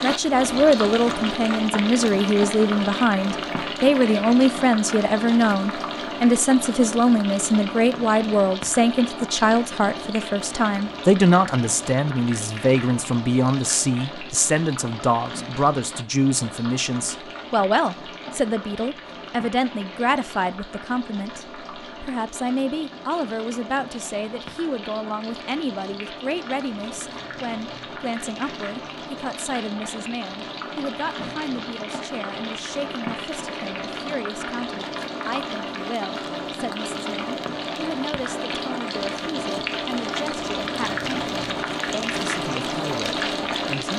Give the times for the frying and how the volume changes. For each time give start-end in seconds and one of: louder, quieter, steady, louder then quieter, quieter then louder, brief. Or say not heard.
0.0-43.9 quieter then louder.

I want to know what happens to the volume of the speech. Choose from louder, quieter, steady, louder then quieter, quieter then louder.
quieter.